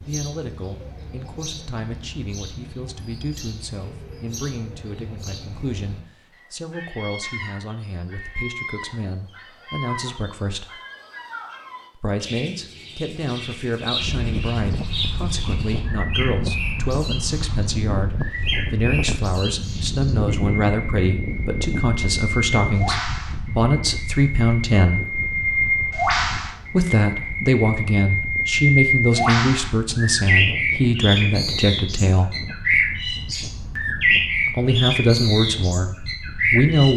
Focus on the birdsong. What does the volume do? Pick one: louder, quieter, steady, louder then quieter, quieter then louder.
louder.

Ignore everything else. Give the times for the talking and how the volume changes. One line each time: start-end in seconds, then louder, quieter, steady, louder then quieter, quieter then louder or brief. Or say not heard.
0.0-10.7 steady
11.9-25.1 louder
26.7-32.4 steady
34.5-36.9 brief.